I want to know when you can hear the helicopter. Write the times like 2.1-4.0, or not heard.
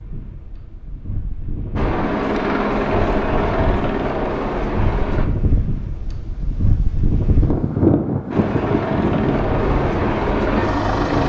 1.8-5.2, 8.3-11.2.